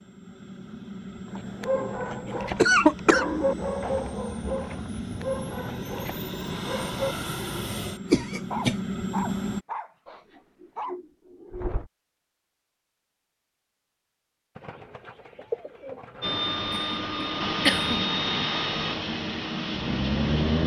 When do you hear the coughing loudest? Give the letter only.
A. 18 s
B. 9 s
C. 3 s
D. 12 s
C.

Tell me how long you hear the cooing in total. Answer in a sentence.
The cooing can be heard for 6 seconds in total.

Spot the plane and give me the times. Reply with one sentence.
You can hear the plane from 0.0 to 9.6 s and from 16.2 to 20.6 s.